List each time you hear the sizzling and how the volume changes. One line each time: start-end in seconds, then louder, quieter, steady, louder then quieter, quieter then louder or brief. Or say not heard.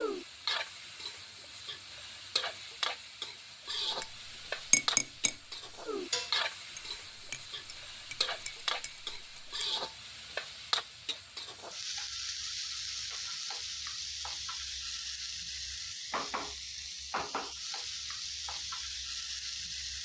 0.0-20.0 steady.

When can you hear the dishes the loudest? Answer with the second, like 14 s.
5 s.